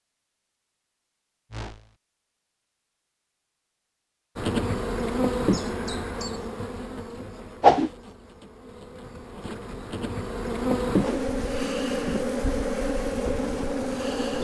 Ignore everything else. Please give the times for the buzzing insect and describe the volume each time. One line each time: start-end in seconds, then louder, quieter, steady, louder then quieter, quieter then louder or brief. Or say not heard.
4.3-14.3 quieter then louder.